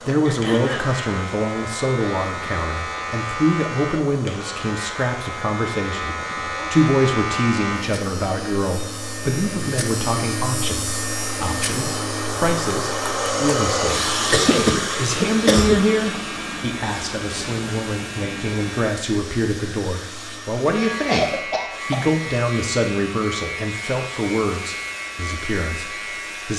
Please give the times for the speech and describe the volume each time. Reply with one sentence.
You can hear the speech from 0.1 to 26.5 s, at a steady volume.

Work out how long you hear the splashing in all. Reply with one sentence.
You can't hear the splashing here.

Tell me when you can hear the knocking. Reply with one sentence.
The knocking can't be heard in this clip.